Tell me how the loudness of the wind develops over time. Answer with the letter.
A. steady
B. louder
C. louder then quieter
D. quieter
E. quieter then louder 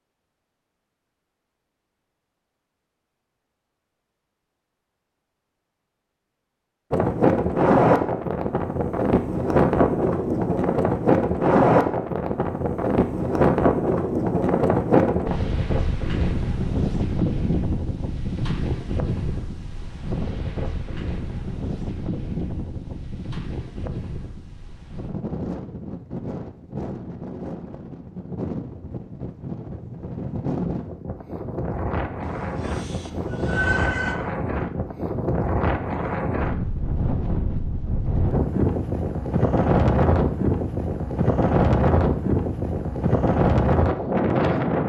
E.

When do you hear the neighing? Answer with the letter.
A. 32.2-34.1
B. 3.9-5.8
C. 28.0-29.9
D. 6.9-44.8
A.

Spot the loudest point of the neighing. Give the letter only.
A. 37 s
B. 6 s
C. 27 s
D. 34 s
D.